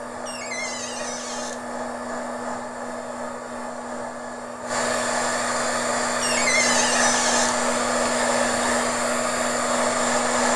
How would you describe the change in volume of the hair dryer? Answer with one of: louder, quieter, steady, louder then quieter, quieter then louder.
louder.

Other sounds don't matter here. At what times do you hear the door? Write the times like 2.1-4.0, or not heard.
0.2-1.6, 6.2-7.6.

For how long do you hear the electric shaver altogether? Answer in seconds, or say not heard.
not heard.